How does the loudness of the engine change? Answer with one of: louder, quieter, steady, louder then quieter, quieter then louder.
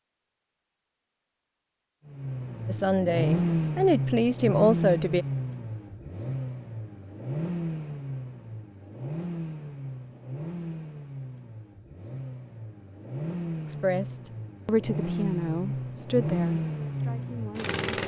quieter then louder.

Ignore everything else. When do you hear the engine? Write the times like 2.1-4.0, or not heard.
2.0-18.0.